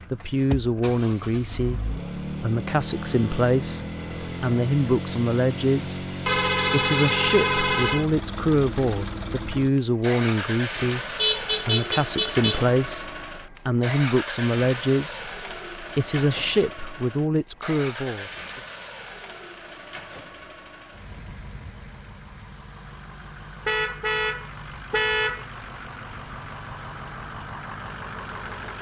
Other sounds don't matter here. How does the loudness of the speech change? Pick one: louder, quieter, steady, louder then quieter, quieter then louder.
steady.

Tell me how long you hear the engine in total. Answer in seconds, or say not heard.
29 s.